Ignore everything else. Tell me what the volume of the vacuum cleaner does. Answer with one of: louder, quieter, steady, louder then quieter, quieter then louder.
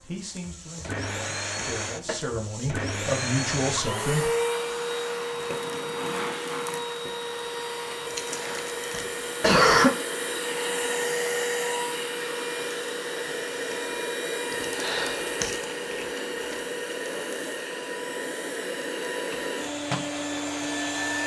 steady.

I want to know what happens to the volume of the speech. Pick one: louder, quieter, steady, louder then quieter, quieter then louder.
louder.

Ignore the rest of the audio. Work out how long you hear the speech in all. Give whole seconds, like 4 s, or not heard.
4 s.